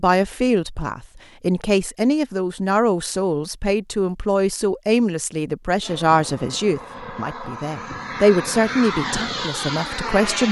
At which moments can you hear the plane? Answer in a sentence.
The plane can be heard from 5.8 to 10.4 s.